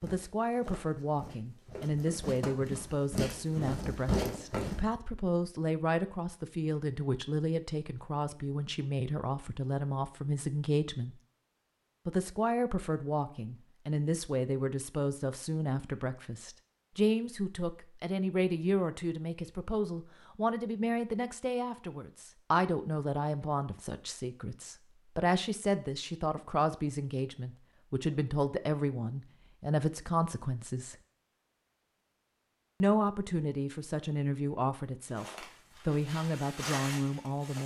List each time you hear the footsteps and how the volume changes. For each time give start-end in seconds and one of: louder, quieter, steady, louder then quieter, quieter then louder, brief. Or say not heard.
0.0-4.8 louder
35.0-37.6 brief.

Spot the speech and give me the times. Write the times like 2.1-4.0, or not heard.
0.0-11.2, 12.1-30.9, 32.8-37.6.